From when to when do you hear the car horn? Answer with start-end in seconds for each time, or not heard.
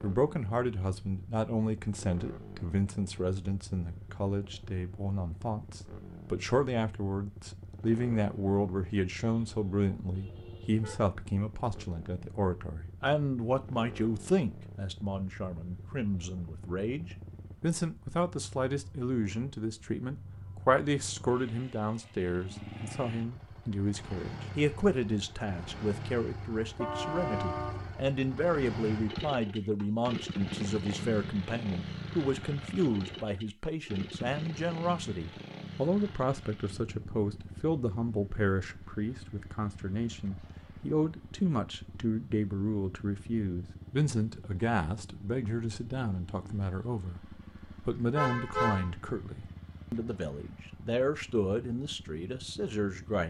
9.2-11.0, 26.8-27.9, 48.1-48.9.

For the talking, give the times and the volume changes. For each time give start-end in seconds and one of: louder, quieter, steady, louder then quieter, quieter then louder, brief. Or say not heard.
0.0-53.2 steady.